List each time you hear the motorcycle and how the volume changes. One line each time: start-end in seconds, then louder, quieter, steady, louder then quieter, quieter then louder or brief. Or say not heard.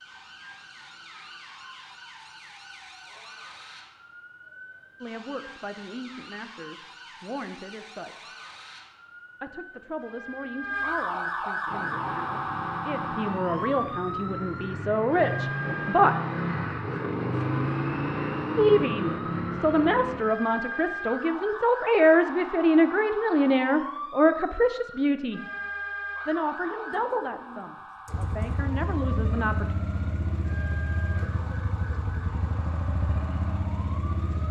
11.7-20.2 louder
28.1-34.4 steady.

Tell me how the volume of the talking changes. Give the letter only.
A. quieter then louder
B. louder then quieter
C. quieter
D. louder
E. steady
B.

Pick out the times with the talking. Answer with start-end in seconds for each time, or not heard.
5.0-8.2, 9.4-16.1, 18.6-25.4, 26.2-29.8.